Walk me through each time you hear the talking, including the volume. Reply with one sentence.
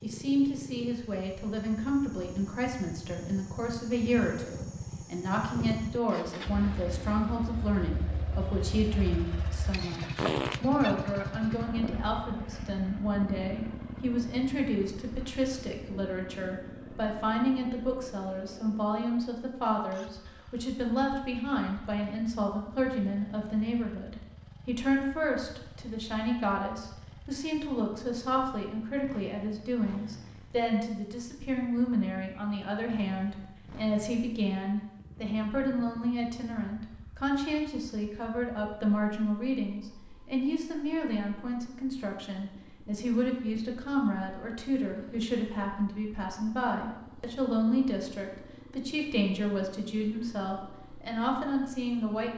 You can hear the talking from 0.0 to 52.3 s, at a steady volume.